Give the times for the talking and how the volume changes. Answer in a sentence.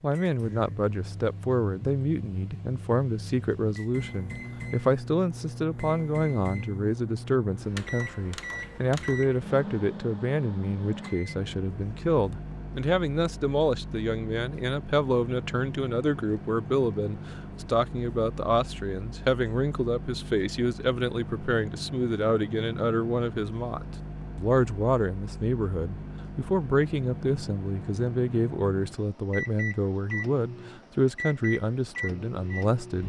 The talking can be heard from 0.0 to 33.0 s, at a steady volume.